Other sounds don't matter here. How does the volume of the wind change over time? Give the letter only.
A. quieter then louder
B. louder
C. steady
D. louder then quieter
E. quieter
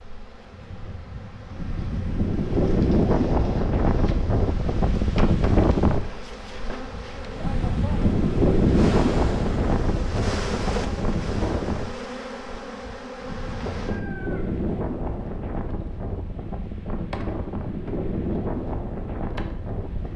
E.